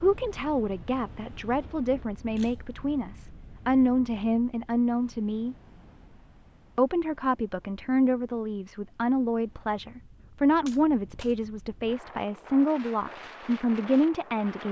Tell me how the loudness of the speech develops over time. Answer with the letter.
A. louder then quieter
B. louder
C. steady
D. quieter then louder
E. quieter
C.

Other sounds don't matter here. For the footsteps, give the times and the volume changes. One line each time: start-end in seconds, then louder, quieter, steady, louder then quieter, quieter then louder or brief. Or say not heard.
not heard.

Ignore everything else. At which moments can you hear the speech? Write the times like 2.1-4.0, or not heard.
0.0-5.5, 6.8-14.6.